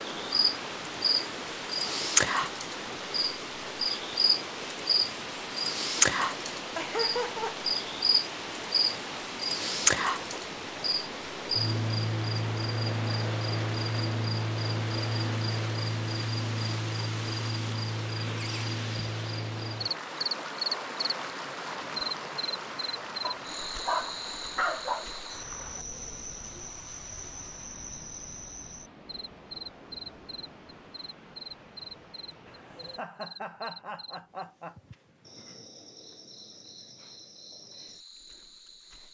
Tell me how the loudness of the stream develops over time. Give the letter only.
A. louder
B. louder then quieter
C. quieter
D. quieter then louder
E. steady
C.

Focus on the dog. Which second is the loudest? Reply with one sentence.
The loudest moment of the dog is at 25 seconds.